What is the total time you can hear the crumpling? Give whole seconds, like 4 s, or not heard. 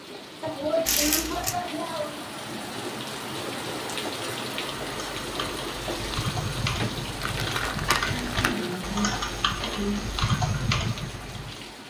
2 s.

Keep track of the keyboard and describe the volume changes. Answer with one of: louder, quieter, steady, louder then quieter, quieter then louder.
louder.